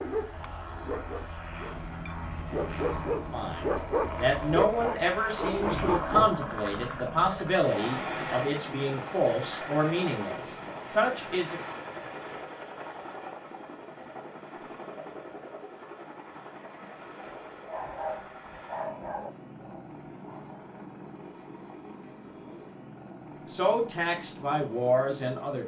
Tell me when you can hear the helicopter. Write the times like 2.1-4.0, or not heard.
0.0-25.6.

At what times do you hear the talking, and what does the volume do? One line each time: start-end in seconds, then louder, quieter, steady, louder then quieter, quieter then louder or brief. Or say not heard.
3.3-11.6 steady
23.5-25.6 brief.